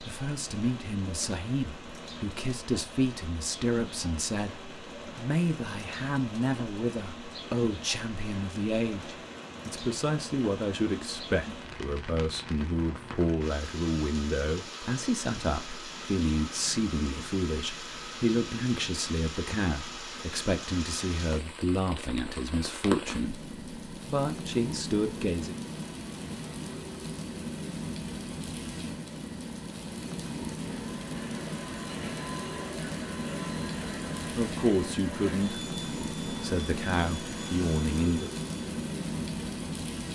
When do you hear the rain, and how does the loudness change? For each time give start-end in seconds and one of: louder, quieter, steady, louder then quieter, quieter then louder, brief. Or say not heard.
0.0-40.1 louder.